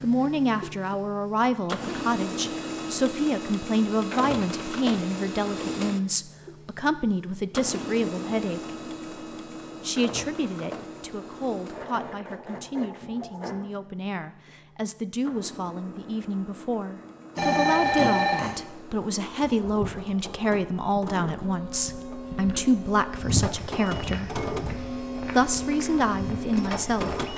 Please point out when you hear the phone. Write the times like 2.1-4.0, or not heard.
17.4-18.6.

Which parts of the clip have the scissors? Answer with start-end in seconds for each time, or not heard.
not heard.